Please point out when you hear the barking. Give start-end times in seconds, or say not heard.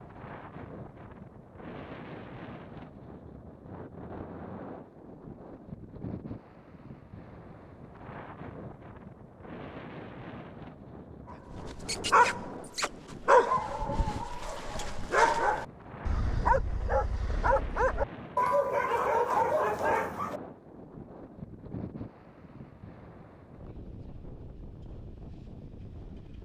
11.3-20.4.